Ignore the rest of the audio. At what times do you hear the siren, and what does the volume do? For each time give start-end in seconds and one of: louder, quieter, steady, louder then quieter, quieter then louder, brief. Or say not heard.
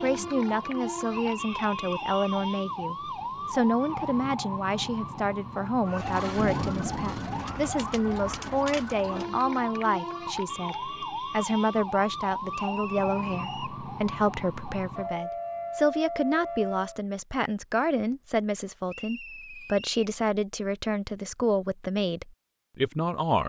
0.0-17.0 steady.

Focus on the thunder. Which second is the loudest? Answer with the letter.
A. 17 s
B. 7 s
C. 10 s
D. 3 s
B.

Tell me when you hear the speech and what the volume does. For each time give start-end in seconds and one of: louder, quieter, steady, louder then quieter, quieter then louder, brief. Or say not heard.
0.0-23.4 steady.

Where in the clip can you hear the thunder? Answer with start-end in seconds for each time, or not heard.
6.3-8.2.